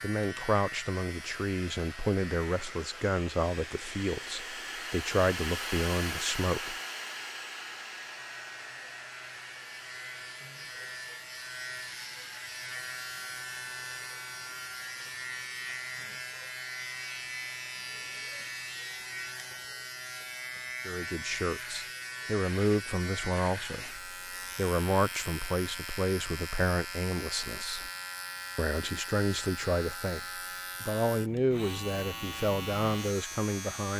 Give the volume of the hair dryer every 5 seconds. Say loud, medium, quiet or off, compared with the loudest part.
medium, loud, quiet, quiet, off, off, off.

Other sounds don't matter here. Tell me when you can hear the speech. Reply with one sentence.
You can hear the speech from 0.0 to 6.8 s, from 20.9 to 27.9 s, from 28.6 to 30.2 s and from 30.8 to 33.9 s.